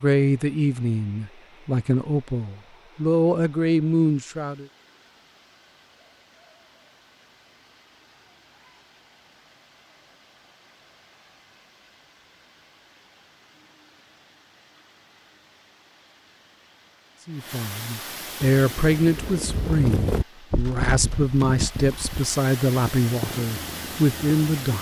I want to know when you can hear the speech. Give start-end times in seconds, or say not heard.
0.0-4.7, 17.2-24.7.